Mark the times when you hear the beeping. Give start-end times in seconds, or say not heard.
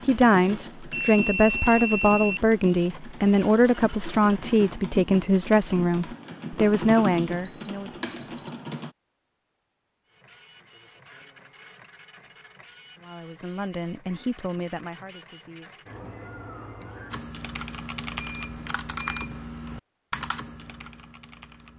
0.4-2.4, 7.4-8.5, 18.2-19.4.